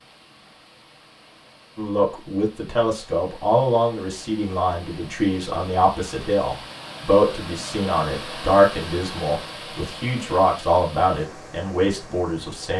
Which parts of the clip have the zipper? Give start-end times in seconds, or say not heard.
not heard.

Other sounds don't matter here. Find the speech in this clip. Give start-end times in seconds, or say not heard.
1.8-12.7.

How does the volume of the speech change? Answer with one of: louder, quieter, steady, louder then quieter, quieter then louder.
steady.